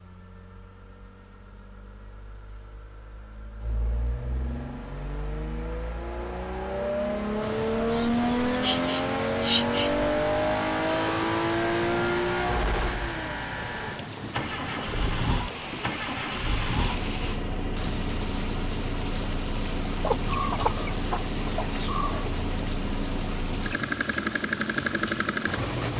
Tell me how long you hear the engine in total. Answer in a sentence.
The engine can be heard for 26 seconds in total.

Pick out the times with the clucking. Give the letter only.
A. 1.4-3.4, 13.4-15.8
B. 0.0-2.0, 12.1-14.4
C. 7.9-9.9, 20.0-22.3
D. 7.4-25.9
C.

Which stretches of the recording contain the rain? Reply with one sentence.
You can hear the rain from 7.4 to 25.9 s.